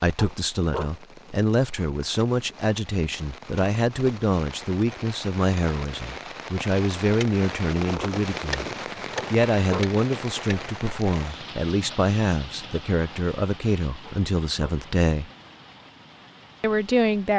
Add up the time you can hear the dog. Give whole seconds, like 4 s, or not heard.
2 s.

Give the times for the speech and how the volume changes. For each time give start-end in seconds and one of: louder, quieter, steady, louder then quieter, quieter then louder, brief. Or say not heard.
0.0-8.7 steady
9.3-15.3 steady
16.6-17.3 brief.